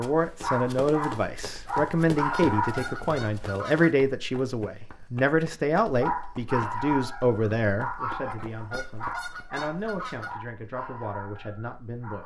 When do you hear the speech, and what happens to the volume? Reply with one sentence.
The speech can be heard from 0.0 to 12.2 s, getting quieter.